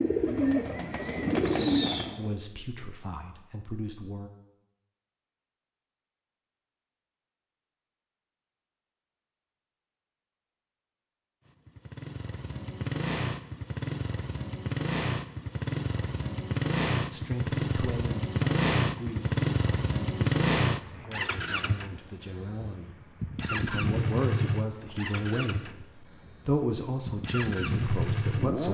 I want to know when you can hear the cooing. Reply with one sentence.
You can hear the cooing from 0.0 to 2.3 s.